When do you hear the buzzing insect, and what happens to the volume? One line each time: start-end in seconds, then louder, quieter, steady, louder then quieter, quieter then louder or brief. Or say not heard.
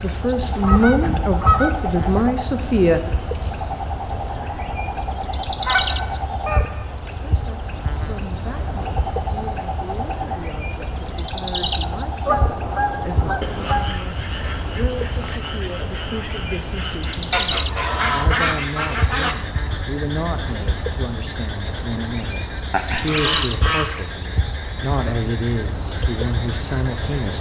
0.0-27.3 steady.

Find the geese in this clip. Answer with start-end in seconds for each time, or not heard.
0.4-2.1, 5.6-7.1, 12.2-13.9, 17.3-19.4, 22.7-24.1.